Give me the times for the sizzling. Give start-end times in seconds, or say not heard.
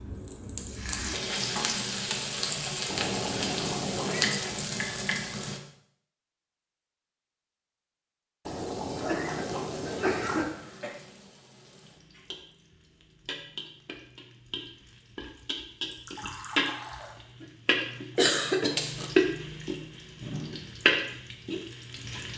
0.0-5.6, 9.3-22.3.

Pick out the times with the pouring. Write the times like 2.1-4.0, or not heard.
2.9-4.3, 8.4-10.4, 15.9-17.1.